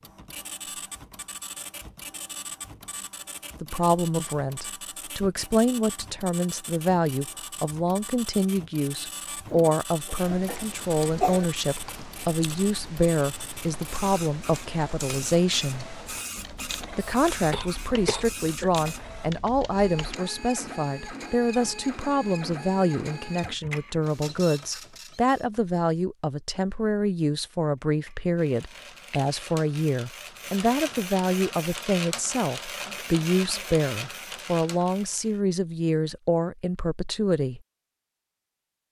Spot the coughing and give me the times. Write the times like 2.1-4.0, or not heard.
9.4-11.4, 17.0-18.7, 32.8-33.8.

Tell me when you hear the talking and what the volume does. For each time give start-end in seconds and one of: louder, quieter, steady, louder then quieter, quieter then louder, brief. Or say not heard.
3.6-15.8 steady
16.9-37.6 steady.